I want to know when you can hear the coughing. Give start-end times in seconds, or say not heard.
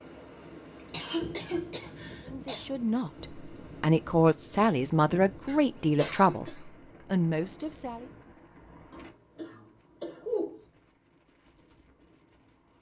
0.9-2.6, 5.5-6.6, 8.9-10.7.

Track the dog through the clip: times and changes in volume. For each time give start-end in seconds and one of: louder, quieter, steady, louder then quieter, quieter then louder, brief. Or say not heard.
not heard.